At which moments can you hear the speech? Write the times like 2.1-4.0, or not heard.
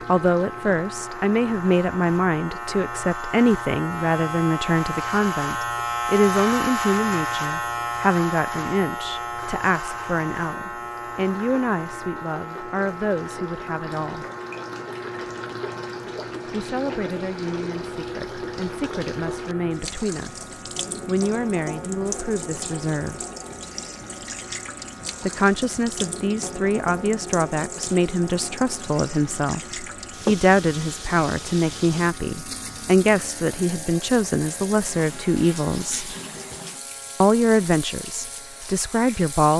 0.1-14.2, 16.4-23.2, 25.2-36.1, 37.2-39.5.